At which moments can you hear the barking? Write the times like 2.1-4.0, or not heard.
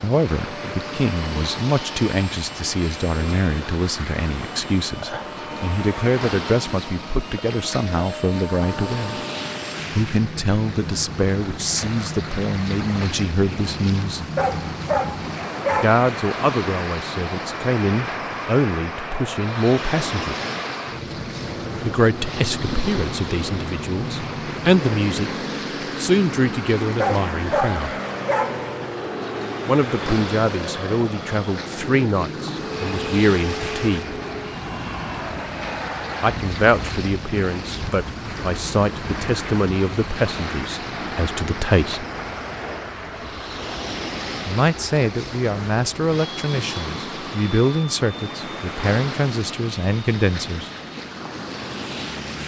14.3-16.0, 26.9-28.6.